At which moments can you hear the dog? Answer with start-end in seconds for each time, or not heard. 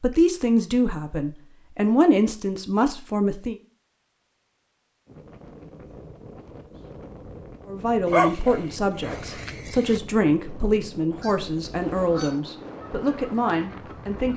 8.1-10.0.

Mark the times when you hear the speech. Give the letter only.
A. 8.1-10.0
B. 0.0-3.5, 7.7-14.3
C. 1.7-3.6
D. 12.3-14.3
B.